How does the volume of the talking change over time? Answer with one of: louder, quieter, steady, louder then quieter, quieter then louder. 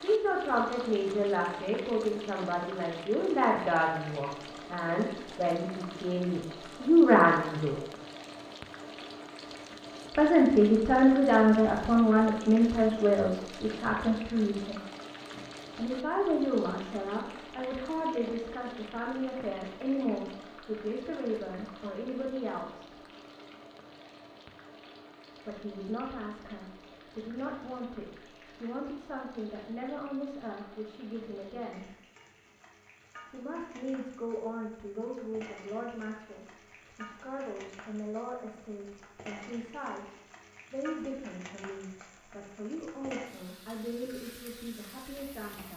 quieter.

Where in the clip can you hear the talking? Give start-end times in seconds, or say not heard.
0.0-7.8, 10.2-14.8, 15.8-22.9, 25.4-31.9, 33.3-45.7.